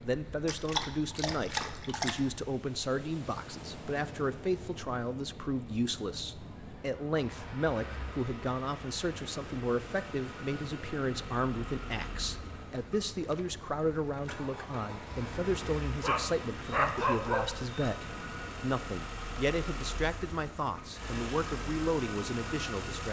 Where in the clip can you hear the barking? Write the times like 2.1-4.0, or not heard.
0.5-2.2, 16.0-17.9.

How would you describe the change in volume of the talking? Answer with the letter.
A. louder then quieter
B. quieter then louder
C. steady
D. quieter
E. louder
C.